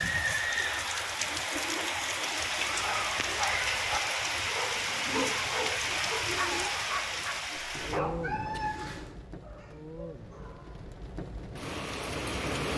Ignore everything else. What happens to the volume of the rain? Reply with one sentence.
The loudness of the rain goes down.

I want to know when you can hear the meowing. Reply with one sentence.
The meowing can be heard from 7.8 to 9.2 s.